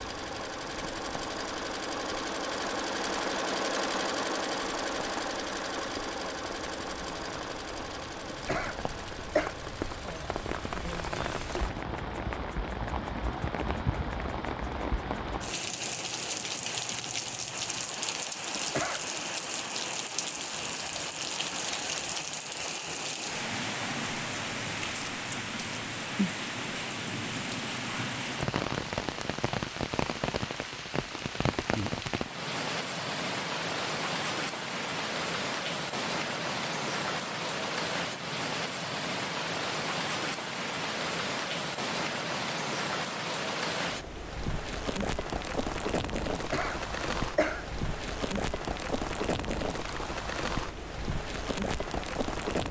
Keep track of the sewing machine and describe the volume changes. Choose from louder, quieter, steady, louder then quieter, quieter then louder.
quieter.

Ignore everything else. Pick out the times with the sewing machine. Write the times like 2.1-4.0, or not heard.
0.0-18.1.